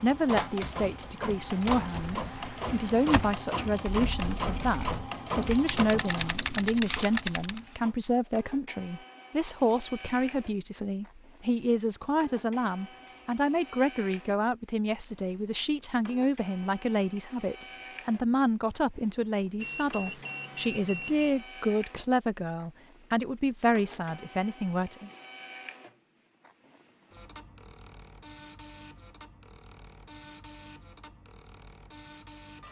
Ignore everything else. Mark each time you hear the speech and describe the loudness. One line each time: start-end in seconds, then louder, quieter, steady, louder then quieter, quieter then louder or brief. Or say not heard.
0.0-25.1 steady.